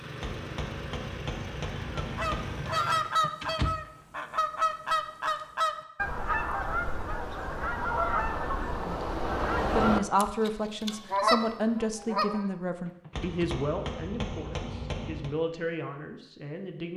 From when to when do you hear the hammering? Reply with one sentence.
The hammering can be heard from 0.2 to 2.8 s and from 13.1 to 15.3 s.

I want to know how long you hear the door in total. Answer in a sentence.
You can hear the door for 2 seconds altogether.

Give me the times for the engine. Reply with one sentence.
The engine can be heard from 0.0 to 3.0 s.